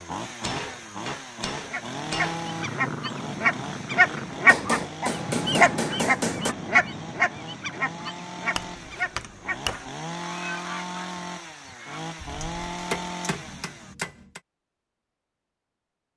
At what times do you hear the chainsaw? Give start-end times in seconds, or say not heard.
0.0-13.9.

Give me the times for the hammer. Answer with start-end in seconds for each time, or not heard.
0.4-2.4, 4.5-6.5, 8.6-9.9, 12.4-14.4.